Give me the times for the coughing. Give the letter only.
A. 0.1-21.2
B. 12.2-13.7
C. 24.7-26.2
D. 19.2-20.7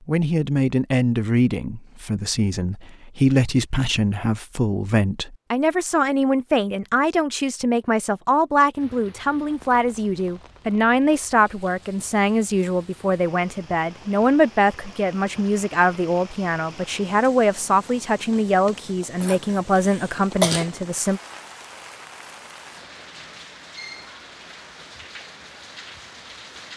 D.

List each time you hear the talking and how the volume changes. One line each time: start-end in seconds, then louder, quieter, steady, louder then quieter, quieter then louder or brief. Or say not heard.
0.1-21.2 steady.